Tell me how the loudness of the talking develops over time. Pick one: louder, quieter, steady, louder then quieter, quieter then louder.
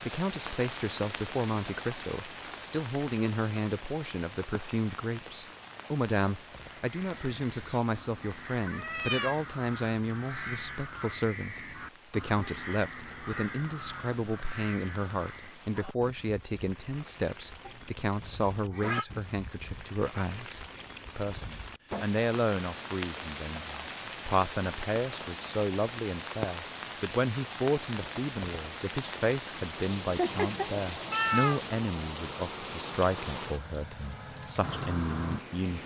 steady.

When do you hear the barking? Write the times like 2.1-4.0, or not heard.
not heard.